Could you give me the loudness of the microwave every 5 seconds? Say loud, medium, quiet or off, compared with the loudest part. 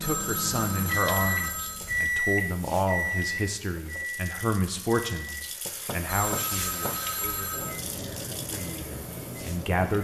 loud, medium.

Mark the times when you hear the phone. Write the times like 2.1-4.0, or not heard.
0.0-2.0, 6.0-7.8.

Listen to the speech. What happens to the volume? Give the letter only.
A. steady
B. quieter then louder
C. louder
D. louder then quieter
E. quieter
E.